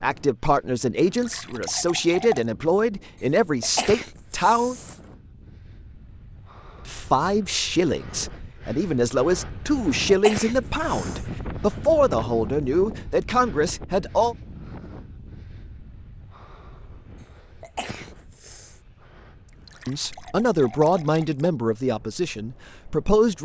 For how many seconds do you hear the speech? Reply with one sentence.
You can hear the speech for 16 seconds altogether.